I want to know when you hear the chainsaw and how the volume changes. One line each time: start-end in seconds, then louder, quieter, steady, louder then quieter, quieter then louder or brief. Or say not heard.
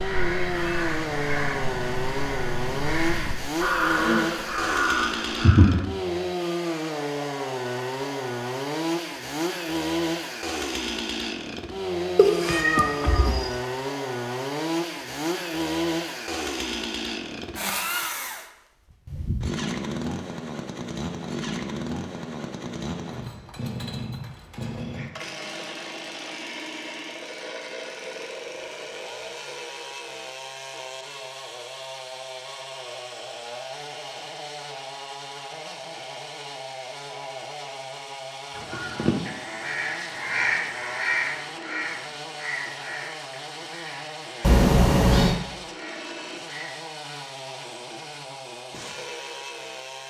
0.0-50.0 quieter.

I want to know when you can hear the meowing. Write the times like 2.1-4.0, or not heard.
12.2-13.5, 44.4-45.4.